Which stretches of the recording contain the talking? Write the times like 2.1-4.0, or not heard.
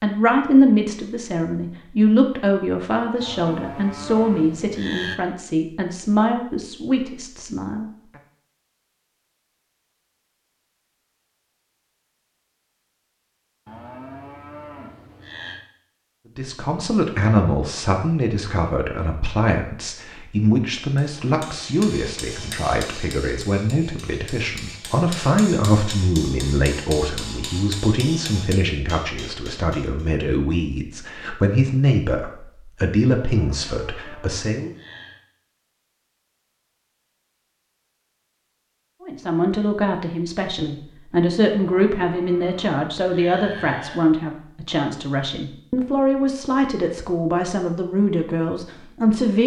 0.0-7.8, 16.4-34.7, 39.0-49.4.